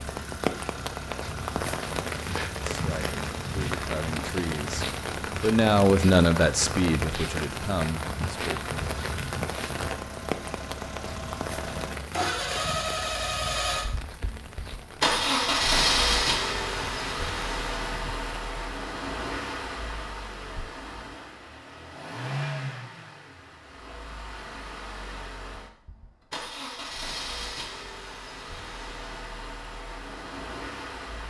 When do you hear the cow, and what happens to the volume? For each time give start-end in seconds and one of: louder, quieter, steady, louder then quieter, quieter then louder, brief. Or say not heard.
not heard.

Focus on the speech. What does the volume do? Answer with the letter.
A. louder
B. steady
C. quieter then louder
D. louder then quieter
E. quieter
D.